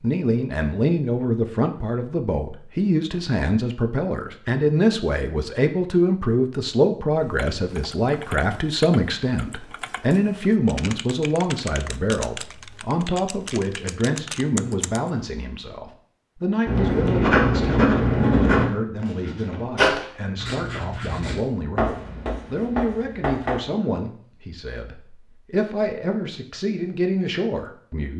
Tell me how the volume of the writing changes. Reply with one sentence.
The volume of the writing goes down.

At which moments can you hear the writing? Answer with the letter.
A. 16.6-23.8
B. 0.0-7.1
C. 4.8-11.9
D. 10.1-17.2
A.